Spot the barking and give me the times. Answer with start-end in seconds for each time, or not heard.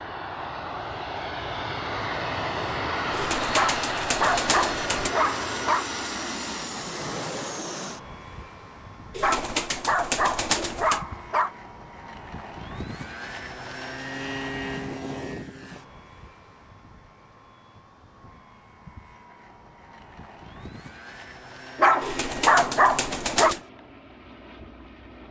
3.5-5.8, 9.2-11.5, 21.8-23.6.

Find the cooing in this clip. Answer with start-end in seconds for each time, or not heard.
3.1-5.1, 9.2-11.1, 22.0-23.6.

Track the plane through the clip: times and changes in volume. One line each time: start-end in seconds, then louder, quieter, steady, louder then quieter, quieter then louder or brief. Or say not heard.
0.0-25.2 quieter.